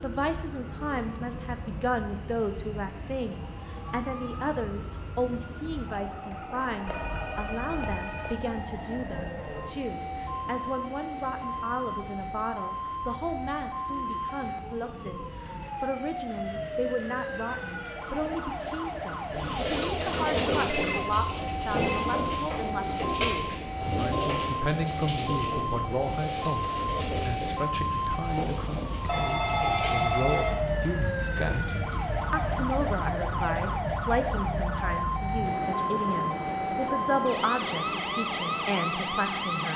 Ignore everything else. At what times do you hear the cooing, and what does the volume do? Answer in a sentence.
You can hear the cooing from 19.2 to 30.1 s, getting quieter.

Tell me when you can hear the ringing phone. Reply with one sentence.
You can hear the ringing phone from 6.8 to 8.5 s, from 20.6 to 22.1 s and from 29.1 to 30.6 s.